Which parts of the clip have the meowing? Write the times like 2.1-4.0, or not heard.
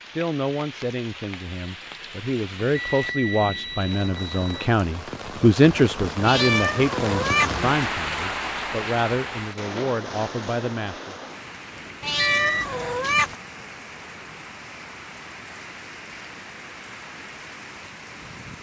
6.2-7.5, 12.0-13.3.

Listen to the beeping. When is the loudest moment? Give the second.
12 s.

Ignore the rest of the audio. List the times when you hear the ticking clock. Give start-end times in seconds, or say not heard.
not heard.